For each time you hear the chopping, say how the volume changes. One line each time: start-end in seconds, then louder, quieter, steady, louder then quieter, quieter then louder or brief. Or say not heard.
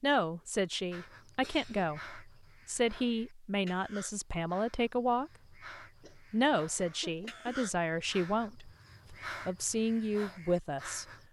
not heard.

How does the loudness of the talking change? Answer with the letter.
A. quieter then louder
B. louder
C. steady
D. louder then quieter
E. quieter
C.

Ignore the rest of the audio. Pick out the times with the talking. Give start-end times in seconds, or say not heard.
0.0-5.3, 6.3-11.1.